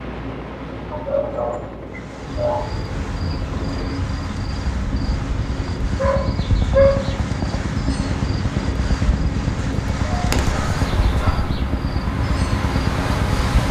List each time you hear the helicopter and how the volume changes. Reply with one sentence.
The helicopter can be heard from 0.0 to 13.6 s, getting louder.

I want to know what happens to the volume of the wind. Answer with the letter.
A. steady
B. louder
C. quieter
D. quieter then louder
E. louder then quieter
B.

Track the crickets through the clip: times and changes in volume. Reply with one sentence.
The crickets can be heard from 2.1 to 13.6 s, at a steady volume.